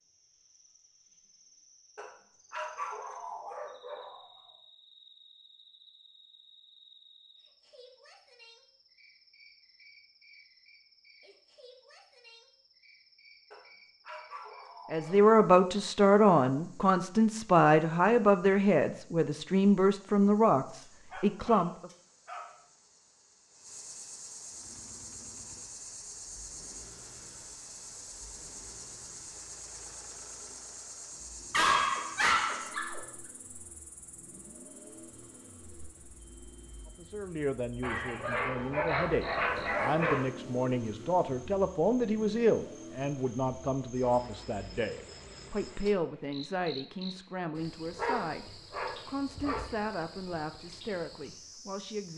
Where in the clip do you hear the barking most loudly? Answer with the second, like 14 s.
32 s.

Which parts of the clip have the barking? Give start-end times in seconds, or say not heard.
1.9-4.2, 13.5-15.3, 20.8-22.6, 31.5-33.0, 37.8-40.2, 48.0-49.6.